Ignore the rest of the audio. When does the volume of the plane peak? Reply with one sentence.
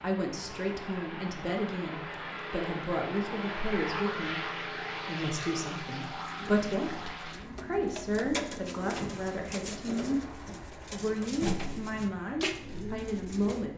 The volume of the plane peaks at 4 seconds.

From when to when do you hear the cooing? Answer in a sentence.
You can hear the cooing from 6.1 to 13.7 s.